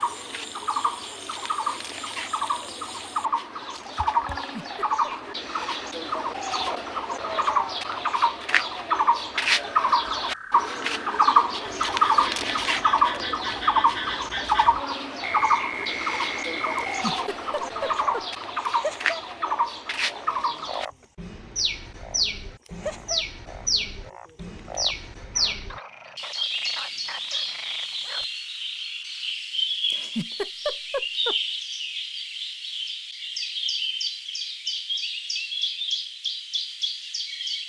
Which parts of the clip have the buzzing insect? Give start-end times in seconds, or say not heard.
not heard.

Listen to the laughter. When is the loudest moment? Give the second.
31 s.